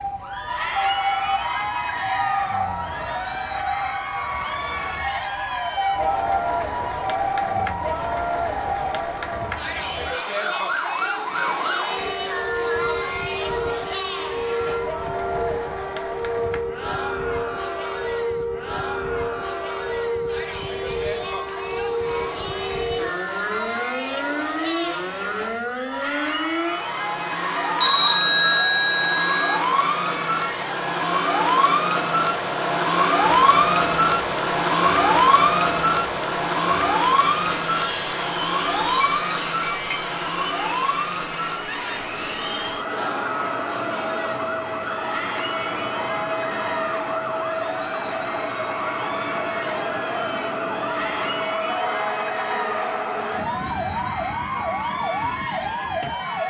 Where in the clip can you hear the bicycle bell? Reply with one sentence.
The bicycle bell can be heard from 12.8 to 13.6 s, from 27.8 to 29.6 s and from 39.0 to 40.0 s.